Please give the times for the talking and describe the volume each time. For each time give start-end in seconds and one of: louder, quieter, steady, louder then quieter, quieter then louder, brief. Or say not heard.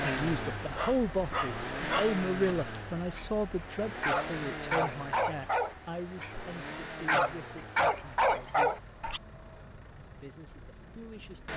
0.0-8.8 quieter
10.1-11.5 brief.